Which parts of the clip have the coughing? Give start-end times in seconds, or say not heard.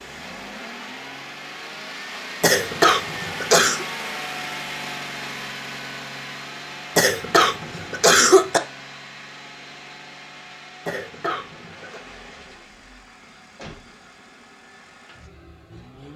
2.4-3.9, 7.0-8.6, 10.8-12.0.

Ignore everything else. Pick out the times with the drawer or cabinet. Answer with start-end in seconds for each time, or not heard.
not heard.